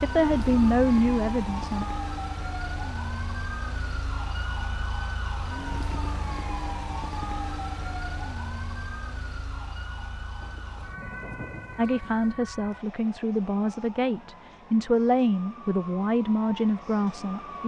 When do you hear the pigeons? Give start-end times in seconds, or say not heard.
not heard.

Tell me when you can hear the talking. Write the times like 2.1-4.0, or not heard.
0.0-1.9, 11.8-17.6.